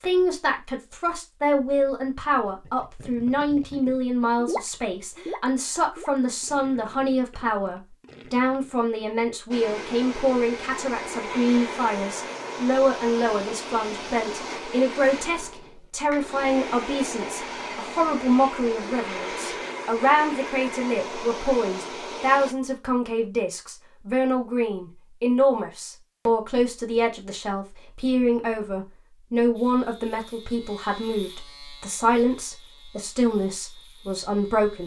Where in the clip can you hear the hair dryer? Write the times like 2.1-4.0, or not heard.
9.5-22.6.